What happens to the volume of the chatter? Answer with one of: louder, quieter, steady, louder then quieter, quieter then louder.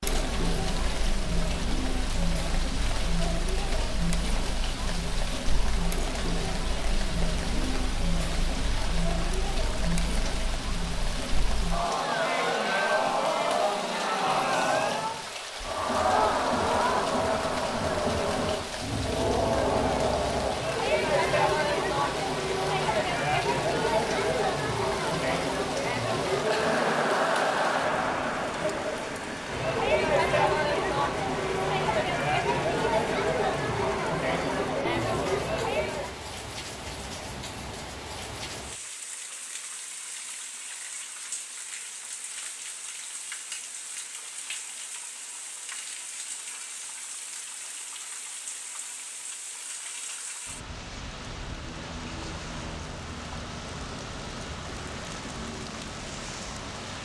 louder.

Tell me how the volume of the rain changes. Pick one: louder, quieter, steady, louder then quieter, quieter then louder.
steady.